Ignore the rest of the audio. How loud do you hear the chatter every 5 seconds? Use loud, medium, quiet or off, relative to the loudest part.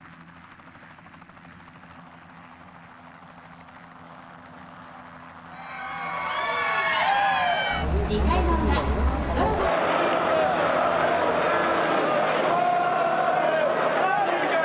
off, loud, loud.